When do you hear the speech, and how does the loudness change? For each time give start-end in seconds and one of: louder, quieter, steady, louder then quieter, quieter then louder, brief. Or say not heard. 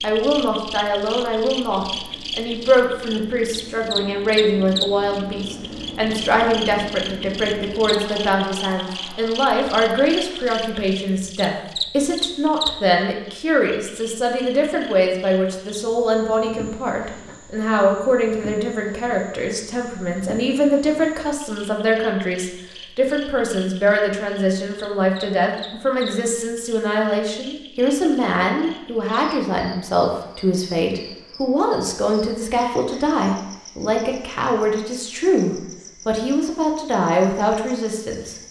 0.0-38.4 steady.